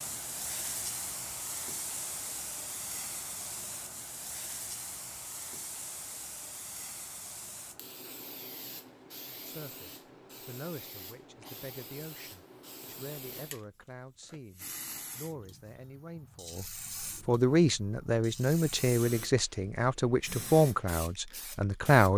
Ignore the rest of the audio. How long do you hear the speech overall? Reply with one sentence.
The speech can be heard for 12 seconds in total.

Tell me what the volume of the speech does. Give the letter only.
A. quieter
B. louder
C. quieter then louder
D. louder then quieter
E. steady
B.